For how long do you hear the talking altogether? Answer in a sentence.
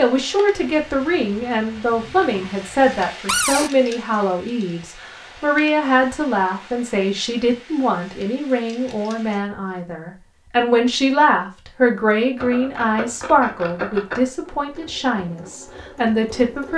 You can hear the talking for 17 seconds altogether.